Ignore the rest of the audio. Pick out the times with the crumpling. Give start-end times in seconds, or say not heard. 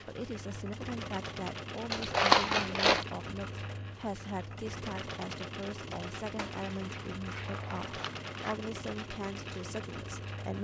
1.9-3.0, 6.3-8.6.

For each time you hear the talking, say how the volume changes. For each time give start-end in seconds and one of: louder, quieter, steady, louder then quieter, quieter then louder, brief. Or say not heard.
0.1-10.5 steady.